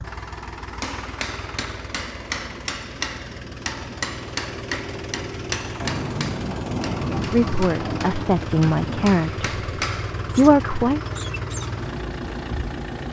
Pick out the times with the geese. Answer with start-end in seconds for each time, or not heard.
not heard.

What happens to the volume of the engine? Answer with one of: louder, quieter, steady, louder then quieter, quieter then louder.
louder.